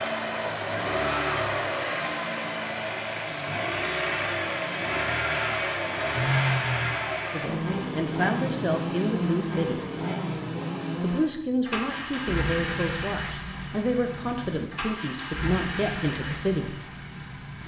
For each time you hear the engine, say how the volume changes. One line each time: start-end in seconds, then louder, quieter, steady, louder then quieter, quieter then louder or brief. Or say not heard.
0.0-17.6 quieter.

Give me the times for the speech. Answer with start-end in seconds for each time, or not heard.
7.3-9.8, 11.0-16.8.